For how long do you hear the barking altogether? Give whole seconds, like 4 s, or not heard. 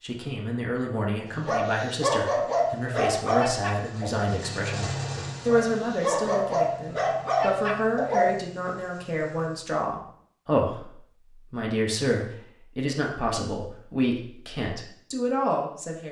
7 s.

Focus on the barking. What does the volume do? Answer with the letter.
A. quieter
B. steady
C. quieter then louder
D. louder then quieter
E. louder
C.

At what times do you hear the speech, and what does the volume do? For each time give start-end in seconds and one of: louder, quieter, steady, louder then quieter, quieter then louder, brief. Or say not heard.
0.0-16.0 steady.